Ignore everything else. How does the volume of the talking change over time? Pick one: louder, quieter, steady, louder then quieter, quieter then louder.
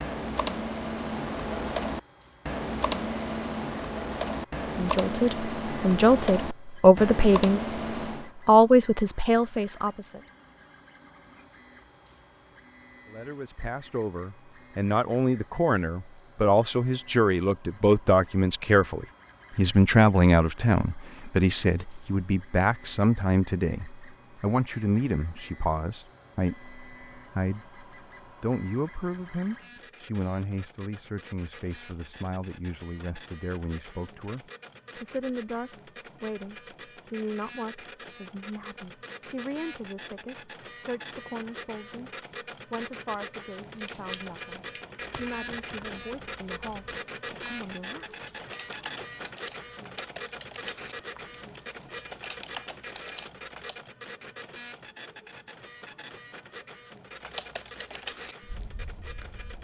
quieter.